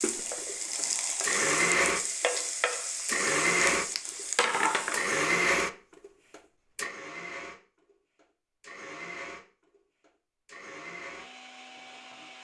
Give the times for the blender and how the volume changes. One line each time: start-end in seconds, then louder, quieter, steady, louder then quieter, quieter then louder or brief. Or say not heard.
0.0-12.3 quieter.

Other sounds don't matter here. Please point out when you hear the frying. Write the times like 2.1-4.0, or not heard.
0.0-5.2.